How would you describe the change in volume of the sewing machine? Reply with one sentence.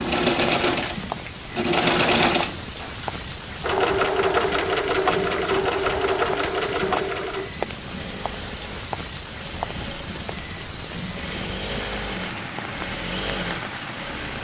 The loudness of the sewing machine goes down, then up.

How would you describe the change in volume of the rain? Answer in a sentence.
The loudness of the rain stays about the same.